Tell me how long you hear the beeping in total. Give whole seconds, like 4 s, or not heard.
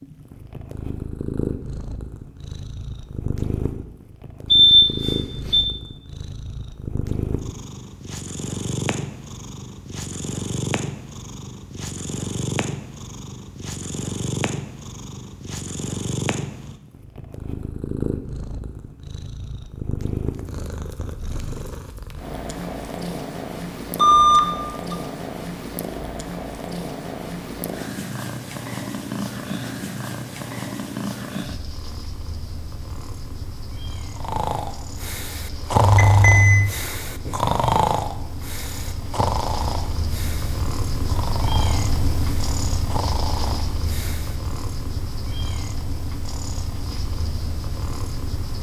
3 s.